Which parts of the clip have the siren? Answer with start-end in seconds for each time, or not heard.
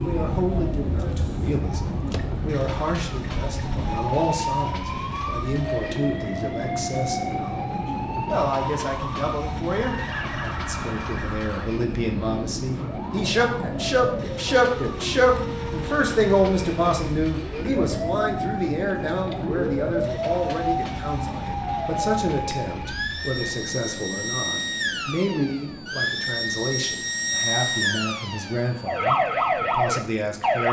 0.0-30.6.